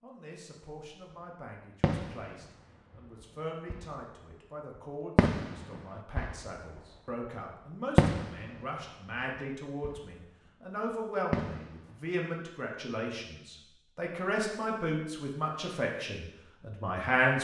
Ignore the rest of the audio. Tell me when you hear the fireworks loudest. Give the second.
8 s.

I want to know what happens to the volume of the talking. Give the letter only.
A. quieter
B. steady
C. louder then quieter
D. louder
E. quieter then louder
D.